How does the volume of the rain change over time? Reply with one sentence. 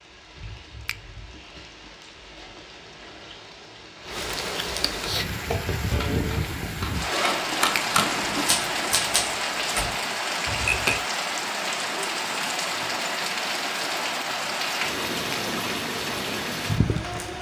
The volume of the rain goes up.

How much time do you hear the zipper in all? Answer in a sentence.
The zipper can be heard for 2 seconds in total.